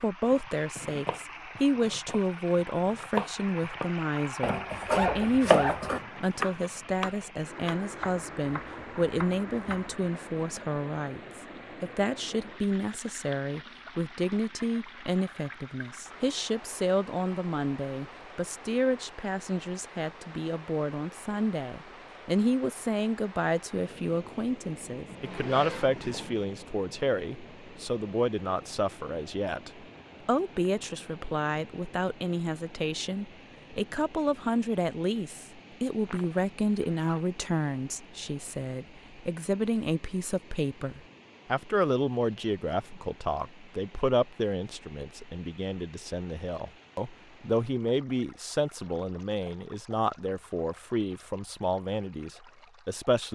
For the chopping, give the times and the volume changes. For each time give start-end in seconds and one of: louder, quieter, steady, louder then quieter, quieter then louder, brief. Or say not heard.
0.2-9.9 louder then quieter.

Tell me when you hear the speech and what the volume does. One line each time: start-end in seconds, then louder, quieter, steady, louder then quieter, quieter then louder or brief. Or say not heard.
0.0-53.2 steady.